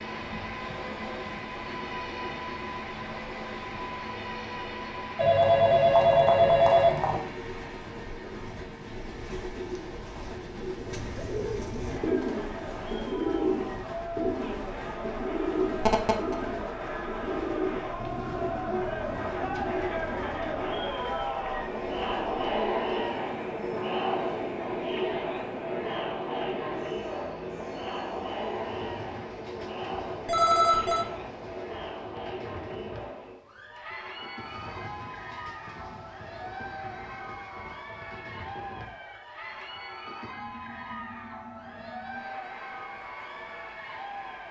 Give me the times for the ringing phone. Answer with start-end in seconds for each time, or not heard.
5.2-7.2, 15.8-16.4, 30.2-31.1.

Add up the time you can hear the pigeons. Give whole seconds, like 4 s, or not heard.
12 s.